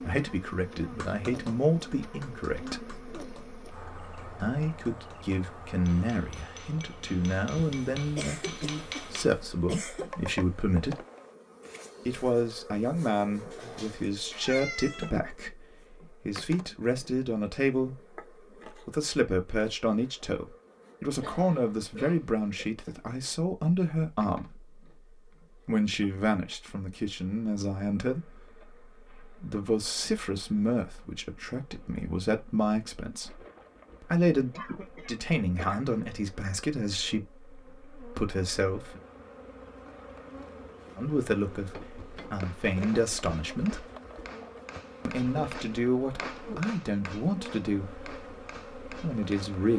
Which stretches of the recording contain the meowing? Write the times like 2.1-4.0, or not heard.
13.5-15.1.